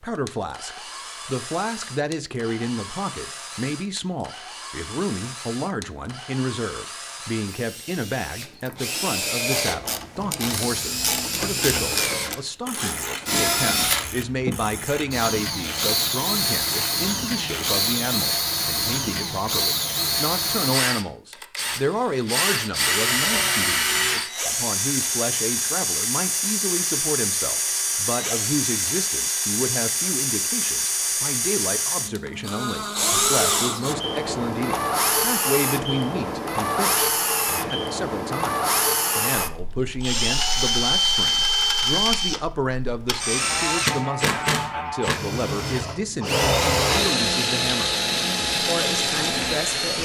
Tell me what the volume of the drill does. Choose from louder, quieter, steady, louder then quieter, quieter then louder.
louder.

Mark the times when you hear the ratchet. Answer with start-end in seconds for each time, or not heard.
9.4-17.9.